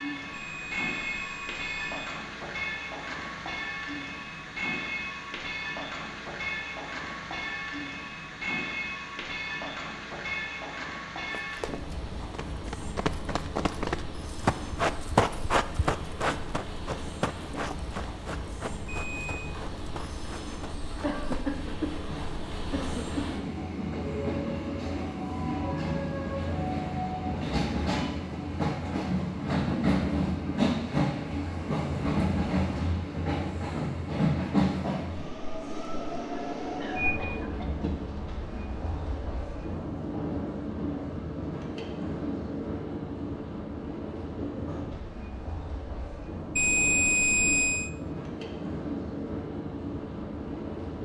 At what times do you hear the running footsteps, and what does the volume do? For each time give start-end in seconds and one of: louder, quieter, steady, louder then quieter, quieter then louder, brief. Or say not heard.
11.4-21.5 louder then quieter.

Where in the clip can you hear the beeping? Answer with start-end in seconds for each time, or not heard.
0.3-2.2, 18.9-19.5, 46.5-47.9.